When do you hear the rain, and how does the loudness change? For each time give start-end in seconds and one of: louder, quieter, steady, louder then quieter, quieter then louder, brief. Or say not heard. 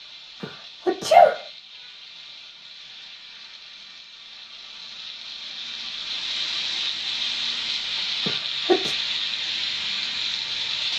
0.0-10.9 louder.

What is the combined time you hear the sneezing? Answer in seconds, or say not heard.
2 s.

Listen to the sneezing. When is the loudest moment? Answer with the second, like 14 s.
1 s.